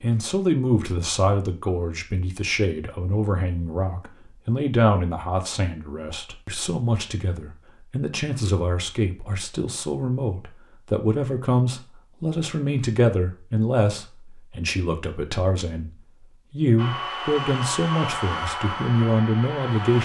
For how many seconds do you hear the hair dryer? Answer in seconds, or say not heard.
3 s.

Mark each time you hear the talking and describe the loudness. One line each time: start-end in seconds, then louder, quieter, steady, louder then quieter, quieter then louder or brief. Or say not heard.
0.0-20.0 steady.